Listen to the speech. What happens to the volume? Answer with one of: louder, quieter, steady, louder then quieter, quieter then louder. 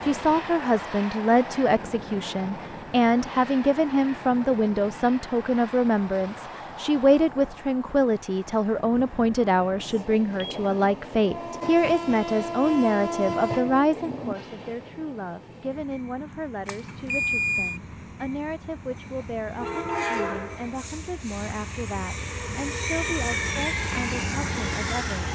quieter.